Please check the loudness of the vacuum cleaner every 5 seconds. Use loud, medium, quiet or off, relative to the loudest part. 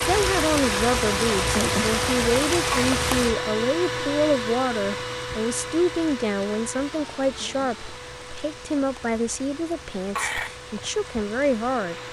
loud, medium, quiet.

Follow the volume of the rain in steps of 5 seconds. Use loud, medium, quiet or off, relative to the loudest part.
loud, quiet, quiet.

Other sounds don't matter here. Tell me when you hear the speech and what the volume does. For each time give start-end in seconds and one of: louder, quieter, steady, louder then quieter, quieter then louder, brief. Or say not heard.
0.0-12.0 steady.